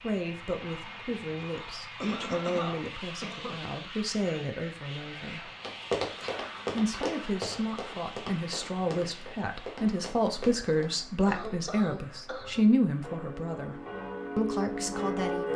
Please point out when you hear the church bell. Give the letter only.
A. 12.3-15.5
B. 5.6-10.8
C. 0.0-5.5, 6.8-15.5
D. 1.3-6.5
A.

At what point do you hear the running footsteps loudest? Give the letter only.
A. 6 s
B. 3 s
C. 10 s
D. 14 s
A.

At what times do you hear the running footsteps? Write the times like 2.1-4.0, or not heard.
5.6-10.8.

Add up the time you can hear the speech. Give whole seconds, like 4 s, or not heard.
14 s.